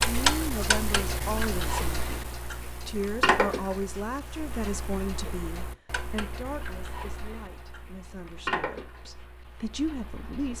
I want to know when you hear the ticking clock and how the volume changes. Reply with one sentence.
You can hear the ticking clock from 0.0 to 10.5 s, getting quieter then louder.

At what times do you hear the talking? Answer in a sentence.
You can hear the talking from 0.0 to 10.5 s.